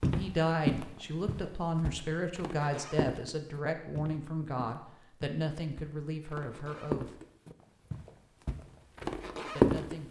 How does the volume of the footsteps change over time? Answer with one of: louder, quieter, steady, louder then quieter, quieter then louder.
quieter then louder.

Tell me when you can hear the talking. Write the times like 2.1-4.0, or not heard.
0.0-7.2, 9.5-10.0.